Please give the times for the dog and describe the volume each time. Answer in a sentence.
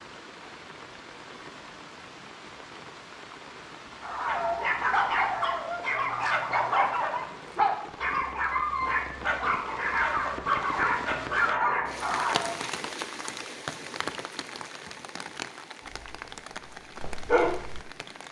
You can hear the dog from 4.0 to 12.7 s, at a steady volume; and briefly from 15.9 to 17.8 s.